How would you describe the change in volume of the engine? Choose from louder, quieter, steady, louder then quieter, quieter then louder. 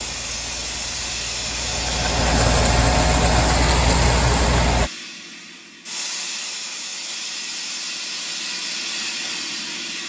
louder.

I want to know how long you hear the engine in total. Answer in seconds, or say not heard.
5 s.